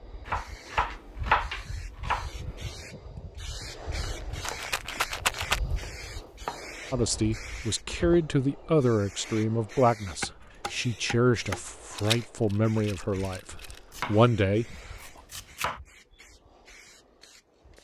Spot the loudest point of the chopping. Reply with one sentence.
The volume of the chopping peaks at 1 second.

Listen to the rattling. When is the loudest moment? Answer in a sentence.
The volume of the rattling peaks at 5 seconds.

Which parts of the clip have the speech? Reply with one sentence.
You can hear the speech from 6.9 to 14.8 s.